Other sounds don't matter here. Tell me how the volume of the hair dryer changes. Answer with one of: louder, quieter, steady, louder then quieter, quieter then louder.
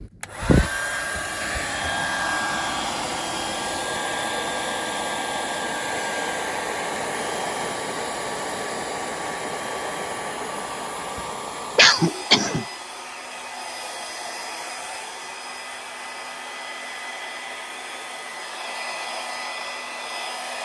quieter.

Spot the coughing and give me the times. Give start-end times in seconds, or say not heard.
11.8-12.7.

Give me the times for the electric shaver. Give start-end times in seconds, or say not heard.
not heard.